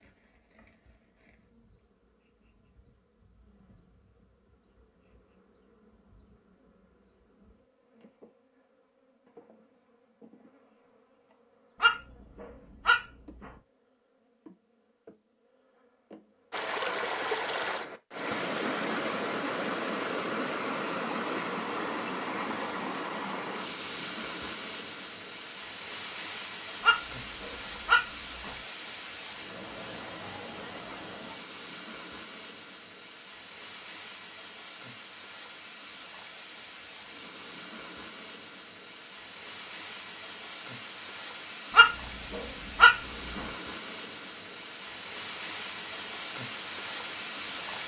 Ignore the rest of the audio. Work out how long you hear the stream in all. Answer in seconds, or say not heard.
31 s.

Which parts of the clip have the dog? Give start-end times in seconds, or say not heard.
11.8-13.5, 26.8-28.6, 41.7-43.5.